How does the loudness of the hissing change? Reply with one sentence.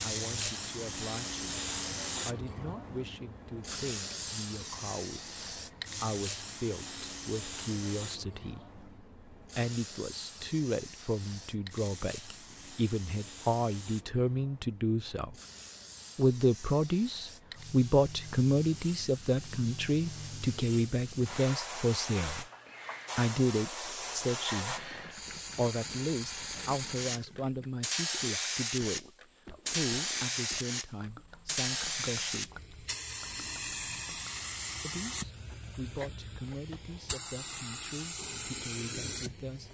The volume of the hissing goes down, then up.